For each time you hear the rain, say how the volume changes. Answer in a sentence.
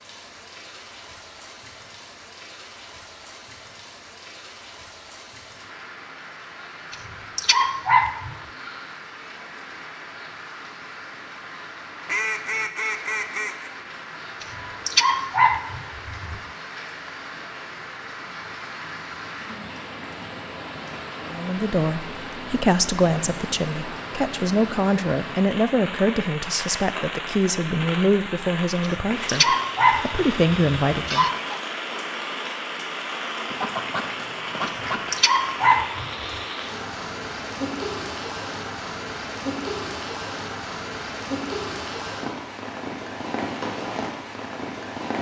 The rain can be heard from 0.0 to 45.1 s, getting louder.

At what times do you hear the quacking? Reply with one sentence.
You can hear the quacking from 12.1 to 13.7 s and from 33.5 to 35.2 s.